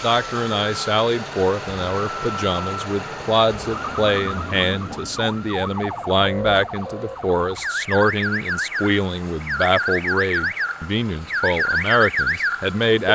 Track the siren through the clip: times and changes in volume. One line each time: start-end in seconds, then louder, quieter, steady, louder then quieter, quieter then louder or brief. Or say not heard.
0.1-13.1 louder.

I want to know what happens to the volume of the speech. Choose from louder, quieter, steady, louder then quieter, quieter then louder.
steady.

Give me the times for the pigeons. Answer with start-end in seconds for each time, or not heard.
not heard.